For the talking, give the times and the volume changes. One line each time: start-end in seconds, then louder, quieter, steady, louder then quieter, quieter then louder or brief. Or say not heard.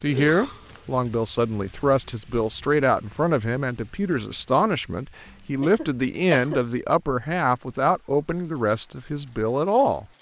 0.0-10.1 steady.